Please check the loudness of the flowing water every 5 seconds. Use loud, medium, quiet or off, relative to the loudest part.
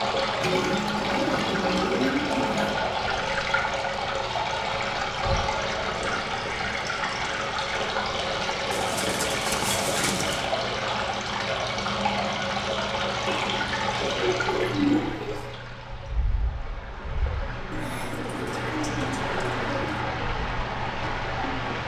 loud, loud, loud, medium, loud.